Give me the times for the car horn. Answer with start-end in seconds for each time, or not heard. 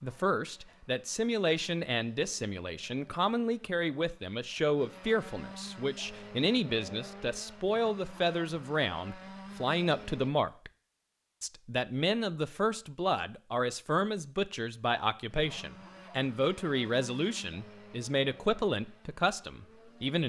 not heard.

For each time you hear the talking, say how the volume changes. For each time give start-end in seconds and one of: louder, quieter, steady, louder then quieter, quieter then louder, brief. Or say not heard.
0.0-10.7 steady
11.4-20.2 steady.